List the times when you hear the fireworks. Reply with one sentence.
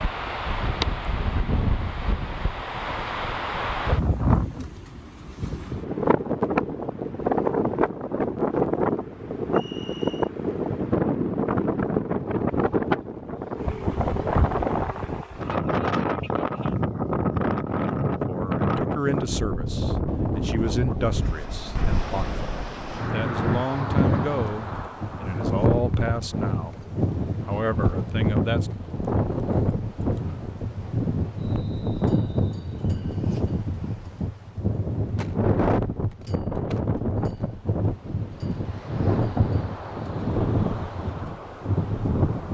The fireworks can't be heard in this clip.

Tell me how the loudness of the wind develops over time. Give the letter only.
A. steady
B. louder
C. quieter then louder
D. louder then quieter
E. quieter
A.